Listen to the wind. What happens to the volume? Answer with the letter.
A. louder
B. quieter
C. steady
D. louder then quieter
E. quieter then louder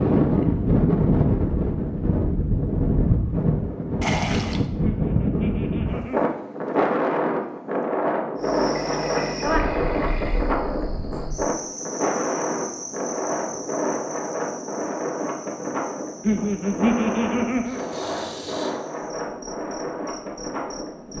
B.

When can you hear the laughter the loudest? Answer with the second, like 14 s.
17 s.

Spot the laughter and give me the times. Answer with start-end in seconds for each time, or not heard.
4.8-6.3, 16.2-17.8.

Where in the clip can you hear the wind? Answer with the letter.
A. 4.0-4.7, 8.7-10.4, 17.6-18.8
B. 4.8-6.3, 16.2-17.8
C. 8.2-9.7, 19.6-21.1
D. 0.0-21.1
D.